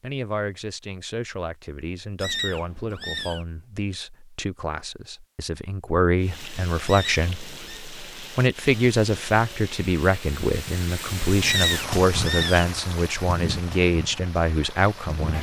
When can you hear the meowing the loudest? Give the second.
12 s.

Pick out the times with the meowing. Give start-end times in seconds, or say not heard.
2.1-3.5, 6.8-7.8, 11.4-12.7.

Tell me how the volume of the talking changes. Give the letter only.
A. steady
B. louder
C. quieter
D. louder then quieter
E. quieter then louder
B.